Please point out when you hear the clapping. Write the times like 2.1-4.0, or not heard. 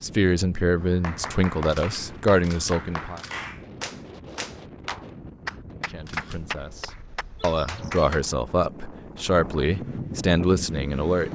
0.8-8.2.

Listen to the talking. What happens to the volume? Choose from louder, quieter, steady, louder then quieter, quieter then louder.
quieter then louder.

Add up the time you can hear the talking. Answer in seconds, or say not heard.
9 s.